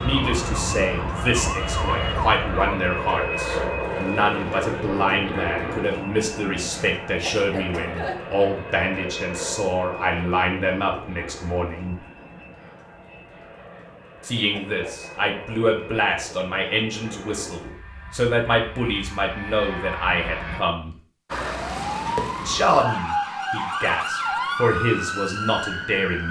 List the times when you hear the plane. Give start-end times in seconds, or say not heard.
0.0-20.6.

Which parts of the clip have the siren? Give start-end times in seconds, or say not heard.
0.0-4.7, 21.3-26.2.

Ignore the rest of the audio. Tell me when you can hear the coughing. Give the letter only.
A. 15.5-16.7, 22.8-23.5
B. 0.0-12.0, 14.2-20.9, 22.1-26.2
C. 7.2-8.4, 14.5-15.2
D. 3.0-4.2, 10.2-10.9
C.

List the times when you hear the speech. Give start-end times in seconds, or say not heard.
0.0-12.0, 14.2-20.9, 22.1-26.2.